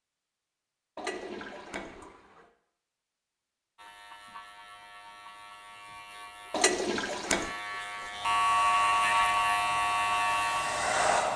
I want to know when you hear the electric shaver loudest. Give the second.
9 s.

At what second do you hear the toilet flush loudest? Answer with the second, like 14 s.
7 s.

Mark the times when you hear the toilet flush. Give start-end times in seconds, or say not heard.
0.9-2.5, 6.5-7.5.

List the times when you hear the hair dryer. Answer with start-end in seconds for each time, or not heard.
8.2-11.3.